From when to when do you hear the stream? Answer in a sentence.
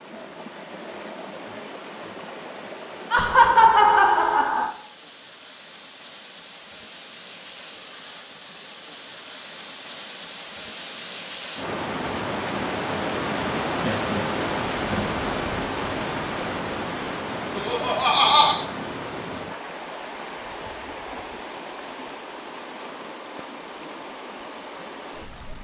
The stream can be heard from 0.0 to 25.5 s.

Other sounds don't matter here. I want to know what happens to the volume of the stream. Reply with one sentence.
The volume of the stream goes up, then down.